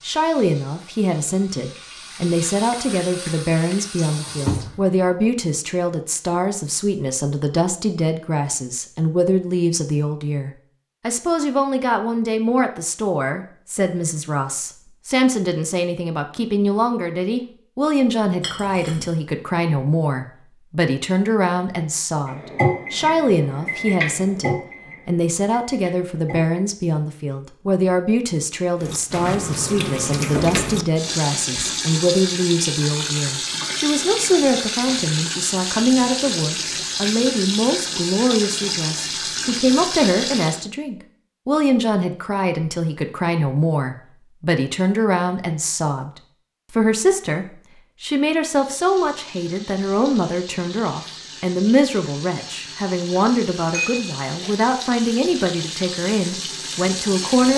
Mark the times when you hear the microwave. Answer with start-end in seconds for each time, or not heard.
22.2-26.6.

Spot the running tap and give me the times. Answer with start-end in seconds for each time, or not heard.
0.0-5.3, 28.8-40.6, 48.5-57.5.